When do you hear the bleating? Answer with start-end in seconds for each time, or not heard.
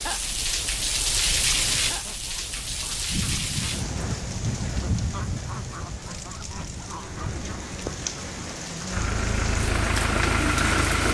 not heard.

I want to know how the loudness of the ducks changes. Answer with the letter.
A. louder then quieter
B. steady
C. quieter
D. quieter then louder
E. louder
A.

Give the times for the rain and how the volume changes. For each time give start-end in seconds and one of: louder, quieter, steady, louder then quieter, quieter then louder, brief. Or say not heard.
0.0-11.0 quieter then louder.